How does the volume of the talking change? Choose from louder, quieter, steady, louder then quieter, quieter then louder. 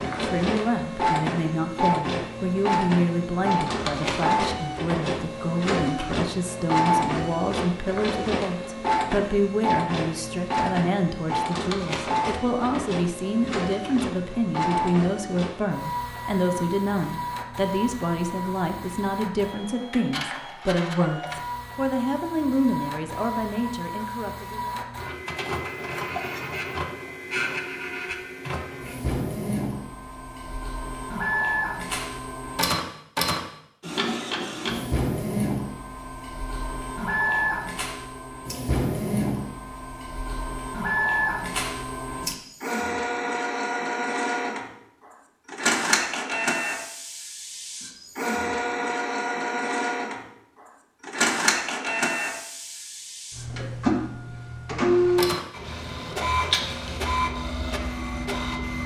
steady.